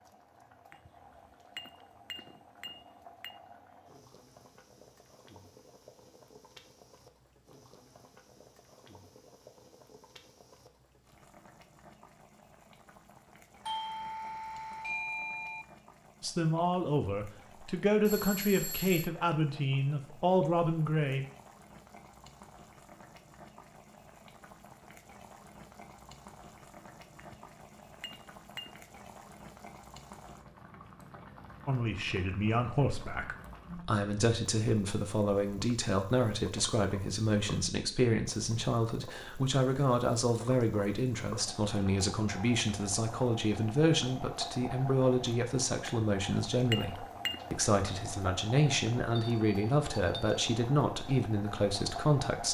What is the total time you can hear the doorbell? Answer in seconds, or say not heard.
4 s.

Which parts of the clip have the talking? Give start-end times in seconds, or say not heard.
16.2-21.2, 31.6-52.4.